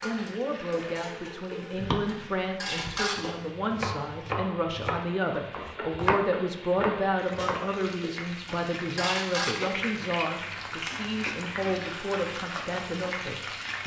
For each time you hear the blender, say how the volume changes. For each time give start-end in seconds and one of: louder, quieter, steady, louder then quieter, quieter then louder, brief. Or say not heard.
not heard.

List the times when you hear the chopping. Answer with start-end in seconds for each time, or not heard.
1.7-7.7.